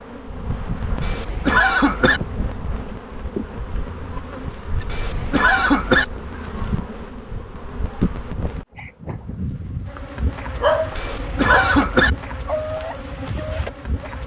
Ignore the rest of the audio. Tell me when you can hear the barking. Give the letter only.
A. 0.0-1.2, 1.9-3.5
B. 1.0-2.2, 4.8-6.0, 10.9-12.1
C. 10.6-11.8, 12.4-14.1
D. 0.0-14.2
C.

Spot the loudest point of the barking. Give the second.
11 s.